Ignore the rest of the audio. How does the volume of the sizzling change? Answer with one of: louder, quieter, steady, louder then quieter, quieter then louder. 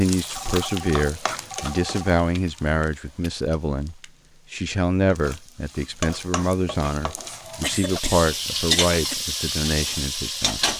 quieter then louder.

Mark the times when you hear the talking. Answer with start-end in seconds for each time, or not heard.
0.0-10.7.